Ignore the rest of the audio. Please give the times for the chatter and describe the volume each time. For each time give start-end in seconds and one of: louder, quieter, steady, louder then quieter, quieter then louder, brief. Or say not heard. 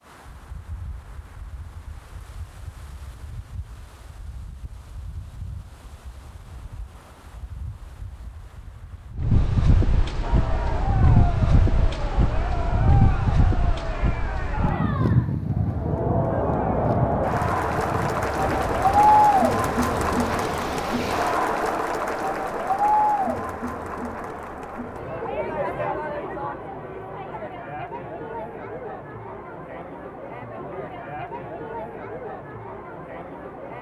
10.2-33.7 louder then quieter.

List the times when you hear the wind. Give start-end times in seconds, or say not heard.
0.0-21.4.